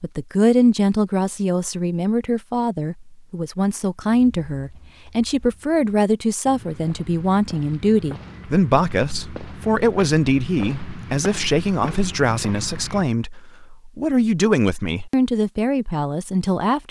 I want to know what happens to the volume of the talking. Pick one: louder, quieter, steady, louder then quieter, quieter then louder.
steady.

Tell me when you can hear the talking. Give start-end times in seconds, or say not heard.
0.0-16.8.